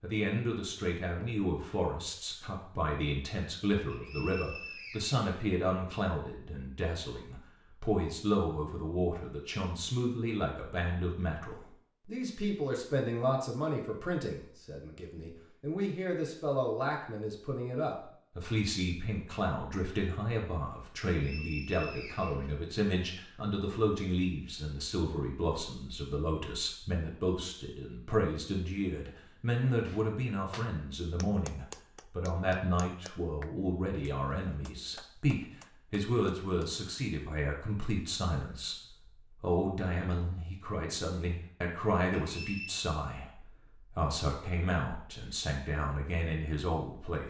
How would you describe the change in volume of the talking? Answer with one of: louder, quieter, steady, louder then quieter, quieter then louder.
steady.